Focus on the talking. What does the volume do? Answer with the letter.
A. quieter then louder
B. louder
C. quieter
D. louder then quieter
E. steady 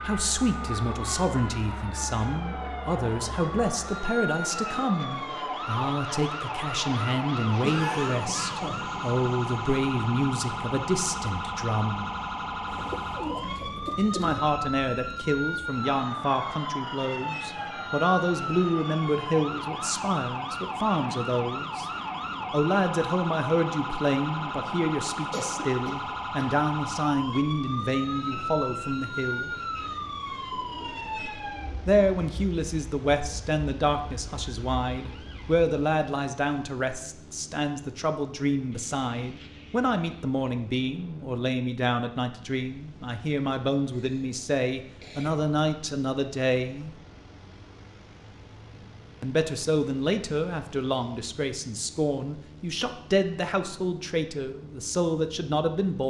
E.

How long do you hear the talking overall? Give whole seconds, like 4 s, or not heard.
49 s.